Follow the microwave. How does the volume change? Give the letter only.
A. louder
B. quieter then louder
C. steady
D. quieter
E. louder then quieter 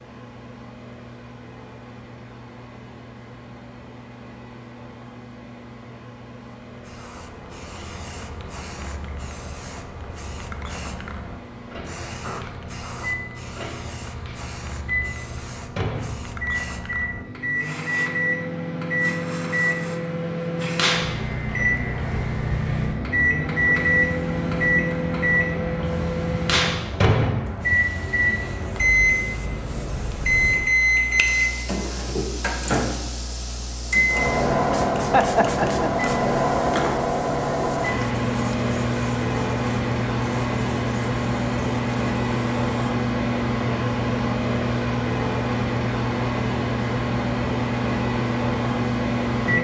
A.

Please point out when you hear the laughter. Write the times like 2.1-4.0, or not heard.
35.1-35.9.